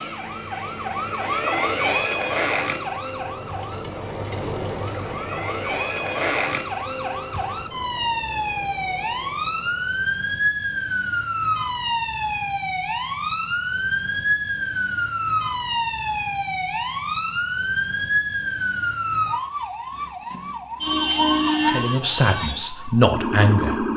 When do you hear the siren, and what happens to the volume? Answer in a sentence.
The siren can be heard from 0.0 to 23.9 s, at a steady volume.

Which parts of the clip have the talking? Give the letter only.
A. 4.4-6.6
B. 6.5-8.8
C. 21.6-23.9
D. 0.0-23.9
C.